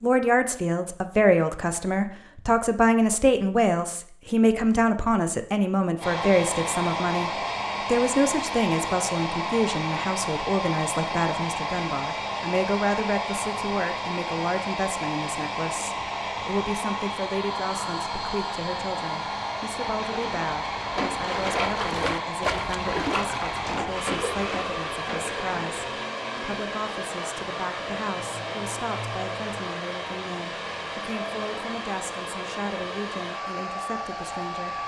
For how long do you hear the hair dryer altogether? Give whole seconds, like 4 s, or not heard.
29 s.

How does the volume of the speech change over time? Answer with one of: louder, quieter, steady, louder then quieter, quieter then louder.
quieter.